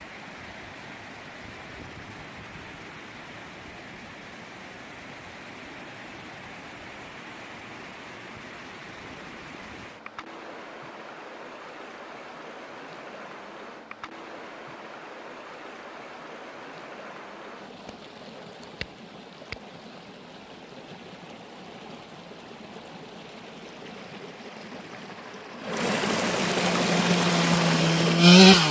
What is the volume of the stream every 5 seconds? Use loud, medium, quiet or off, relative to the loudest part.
quiet, quiet, quiet, quiet, quiet, loud.